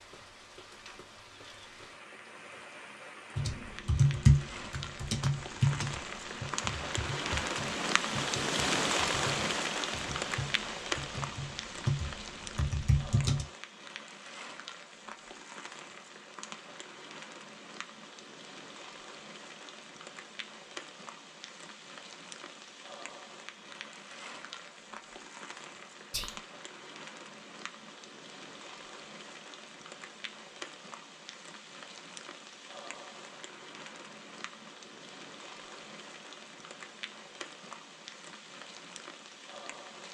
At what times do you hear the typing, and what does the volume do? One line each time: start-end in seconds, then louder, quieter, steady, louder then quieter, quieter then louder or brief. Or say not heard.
3.4-13.4 quieter then louder.